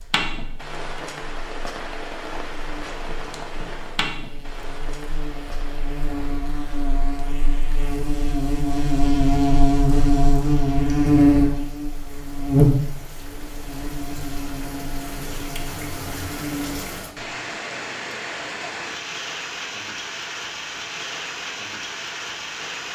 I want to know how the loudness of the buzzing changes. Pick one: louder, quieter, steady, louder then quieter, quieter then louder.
louder then quieter.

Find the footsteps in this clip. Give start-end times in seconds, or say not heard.
not heard.